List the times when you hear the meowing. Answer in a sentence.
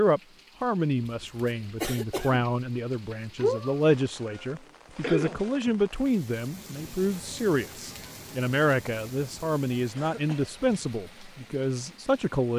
You can hear the meowing from 3.4 to 4.3 s.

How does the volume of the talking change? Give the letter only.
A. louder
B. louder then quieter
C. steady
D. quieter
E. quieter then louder
C.